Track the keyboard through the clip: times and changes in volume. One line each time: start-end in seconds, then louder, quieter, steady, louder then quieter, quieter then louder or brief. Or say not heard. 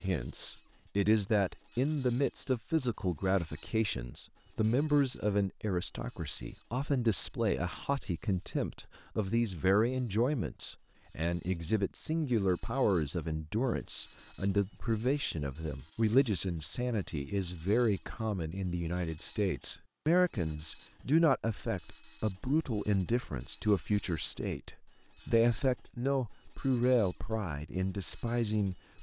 not heard.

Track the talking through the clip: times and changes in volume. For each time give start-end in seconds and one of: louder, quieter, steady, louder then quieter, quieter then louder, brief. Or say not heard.
0.0-28.9 steady.